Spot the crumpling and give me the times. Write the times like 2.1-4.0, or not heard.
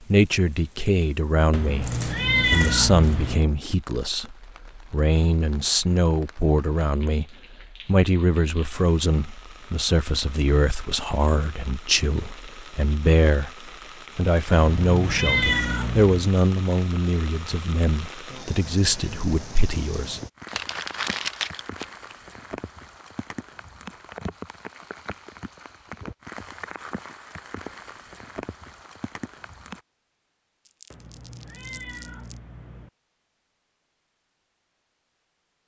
1.8-3.4, 20.4-22.1, 30.6-32.4.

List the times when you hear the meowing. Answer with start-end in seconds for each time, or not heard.
1.5-3.4, 14.5-16.3, 30.9-32.9.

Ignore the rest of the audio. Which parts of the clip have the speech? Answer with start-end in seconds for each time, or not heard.
0.1-7.2, 7.8-20.2.